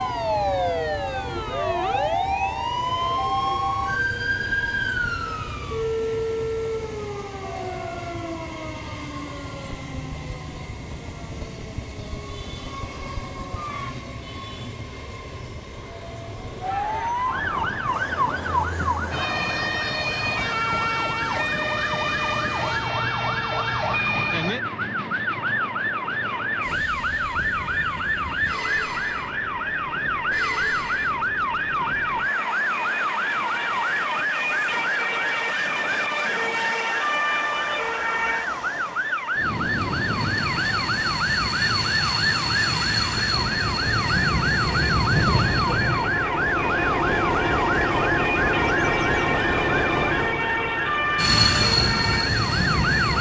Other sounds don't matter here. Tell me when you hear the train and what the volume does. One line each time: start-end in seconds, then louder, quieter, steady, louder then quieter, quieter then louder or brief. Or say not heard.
0.0-53.1 louder.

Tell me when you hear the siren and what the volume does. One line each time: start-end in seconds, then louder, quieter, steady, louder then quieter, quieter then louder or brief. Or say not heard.
0.0-13.9 quieter
16.6-53.1 steady.